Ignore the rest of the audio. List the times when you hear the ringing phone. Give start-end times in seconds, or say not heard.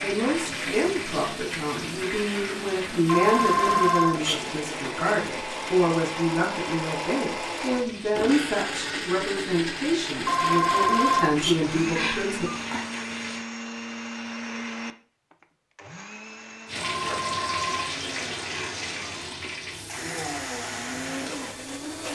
3.0-4.5, 10.2-12.9, 16.8-19.4.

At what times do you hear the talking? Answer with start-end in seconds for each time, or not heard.
0.0-12.5.